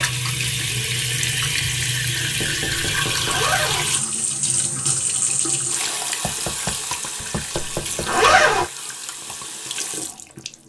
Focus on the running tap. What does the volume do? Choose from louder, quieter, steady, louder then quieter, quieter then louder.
quieter.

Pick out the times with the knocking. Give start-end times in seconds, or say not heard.
2.4-3.5, 6.2-8.1.